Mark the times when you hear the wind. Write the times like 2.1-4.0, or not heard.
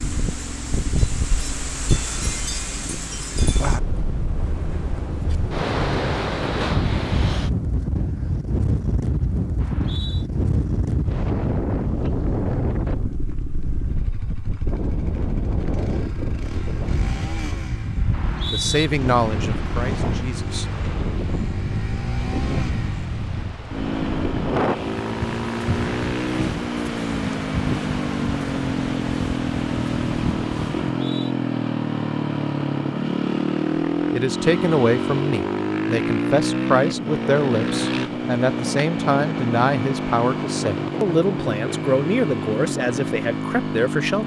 0.0-31.0.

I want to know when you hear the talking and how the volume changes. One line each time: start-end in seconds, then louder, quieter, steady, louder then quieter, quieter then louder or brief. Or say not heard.
18.5-20.6 brief
34.1-44.2 steady.